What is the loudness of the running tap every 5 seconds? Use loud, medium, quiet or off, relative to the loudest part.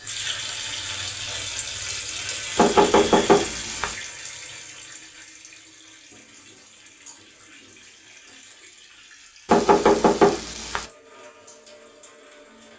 loud, quiet, quiet.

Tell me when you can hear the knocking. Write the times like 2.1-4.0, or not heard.
2.5-4.0, 9.4-10.8.